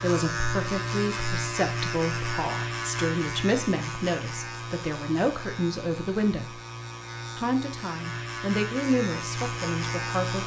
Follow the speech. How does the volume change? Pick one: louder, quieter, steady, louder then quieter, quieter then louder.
steady.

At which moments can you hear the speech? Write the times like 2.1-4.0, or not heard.
0.0-6.6, 7.3-10.4.